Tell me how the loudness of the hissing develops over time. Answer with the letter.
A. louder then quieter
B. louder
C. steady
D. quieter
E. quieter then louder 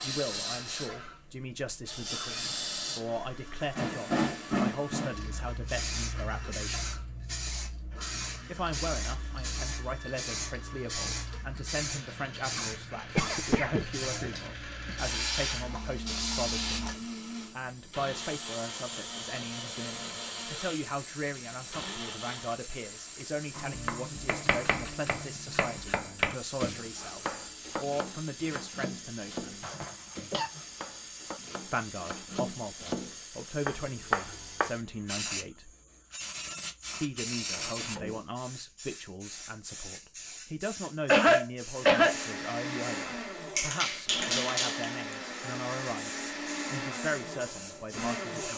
E.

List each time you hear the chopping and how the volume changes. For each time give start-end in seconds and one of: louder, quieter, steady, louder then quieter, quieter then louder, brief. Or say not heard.
23.6-34.7 quieter then louder.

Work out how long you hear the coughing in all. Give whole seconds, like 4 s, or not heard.
4 s.